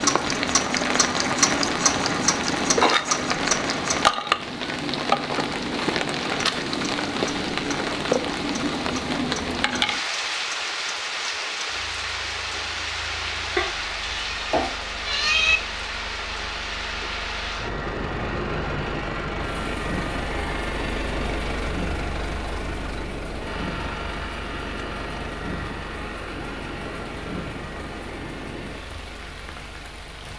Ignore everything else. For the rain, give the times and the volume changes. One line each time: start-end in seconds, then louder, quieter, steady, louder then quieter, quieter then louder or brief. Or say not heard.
0.0-30.3 quieter.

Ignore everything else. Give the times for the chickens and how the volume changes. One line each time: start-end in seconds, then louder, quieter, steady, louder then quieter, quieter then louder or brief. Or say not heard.
not heard.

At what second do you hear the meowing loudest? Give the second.
15 s.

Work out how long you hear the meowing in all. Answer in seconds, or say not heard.
2 s.